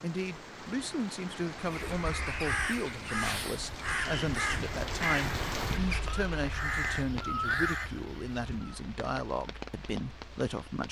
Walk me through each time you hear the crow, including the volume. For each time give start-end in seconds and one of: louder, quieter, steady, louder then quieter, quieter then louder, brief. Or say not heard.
1.6-8.8 steady.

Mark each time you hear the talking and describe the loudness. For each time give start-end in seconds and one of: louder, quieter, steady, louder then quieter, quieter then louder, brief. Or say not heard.
0.0-10.8 steady.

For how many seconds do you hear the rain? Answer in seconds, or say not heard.
11 s.